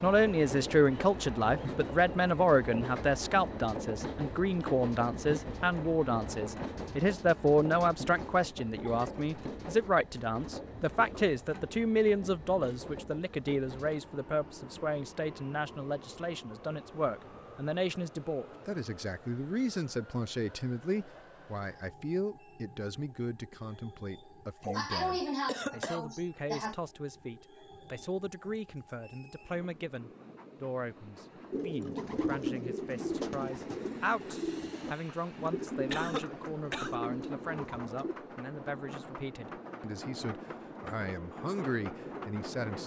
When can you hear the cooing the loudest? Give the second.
32 s.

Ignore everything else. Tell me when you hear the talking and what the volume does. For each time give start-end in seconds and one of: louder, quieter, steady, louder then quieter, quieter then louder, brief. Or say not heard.
0.0-42.8 quieter.